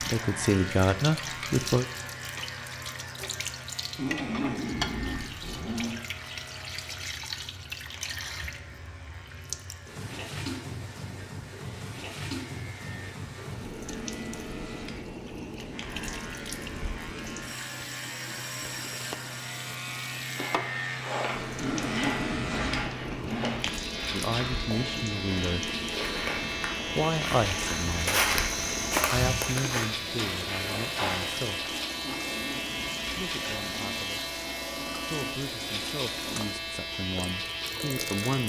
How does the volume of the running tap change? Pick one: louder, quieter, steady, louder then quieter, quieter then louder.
steady.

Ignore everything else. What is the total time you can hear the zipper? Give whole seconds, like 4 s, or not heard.
6 s.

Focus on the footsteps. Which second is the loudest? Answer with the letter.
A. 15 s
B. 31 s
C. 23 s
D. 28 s
D.